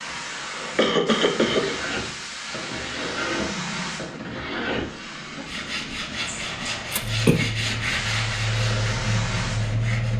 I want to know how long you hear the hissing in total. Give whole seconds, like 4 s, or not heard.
10 s.